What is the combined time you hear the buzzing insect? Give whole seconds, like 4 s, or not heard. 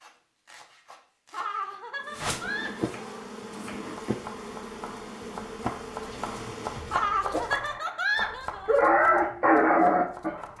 5 s.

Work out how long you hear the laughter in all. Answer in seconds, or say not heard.
4 s.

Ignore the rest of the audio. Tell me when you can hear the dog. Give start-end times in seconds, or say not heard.
7.0-10.5.